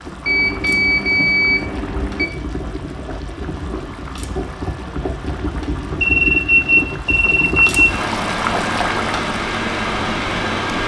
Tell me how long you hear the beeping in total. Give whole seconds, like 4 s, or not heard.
4 s.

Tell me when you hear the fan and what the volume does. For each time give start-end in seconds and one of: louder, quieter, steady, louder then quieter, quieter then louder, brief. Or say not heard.
0.0-10.8 louder.